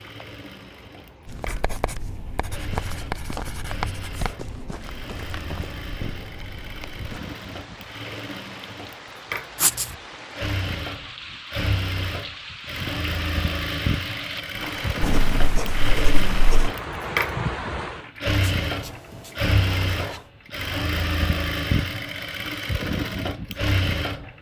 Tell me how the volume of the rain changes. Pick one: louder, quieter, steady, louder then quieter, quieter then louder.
louder.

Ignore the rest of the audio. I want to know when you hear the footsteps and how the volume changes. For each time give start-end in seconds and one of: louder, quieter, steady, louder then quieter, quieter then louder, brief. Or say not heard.
1.2-7.2 louder then quieter.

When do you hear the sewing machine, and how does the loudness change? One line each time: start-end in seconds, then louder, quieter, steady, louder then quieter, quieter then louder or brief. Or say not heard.
0.0-24.3 louder.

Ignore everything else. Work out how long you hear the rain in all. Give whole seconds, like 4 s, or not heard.
18 s.